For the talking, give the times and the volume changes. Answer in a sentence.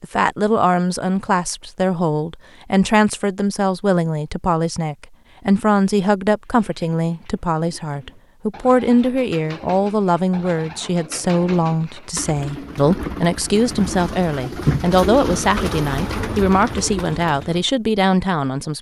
The talking can be heard from 0.0 to 18.7 s, at a steady volume.